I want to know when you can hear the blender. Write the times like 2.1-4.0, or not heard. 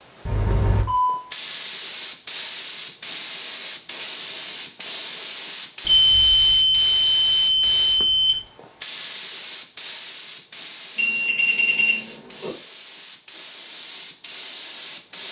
not heard.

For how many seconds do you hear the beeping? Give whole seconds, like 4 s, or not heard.
5 s.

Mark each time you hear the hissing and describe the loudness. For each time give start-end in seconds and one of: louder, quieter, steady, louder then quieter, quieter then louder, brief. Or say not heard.
0.0-15.2 quieter.